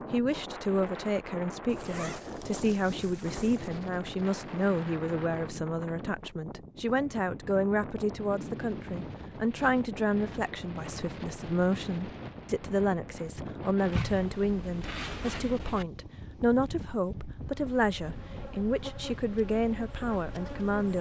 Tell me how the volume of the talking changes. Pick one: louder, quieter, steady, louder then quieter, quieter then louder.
steady.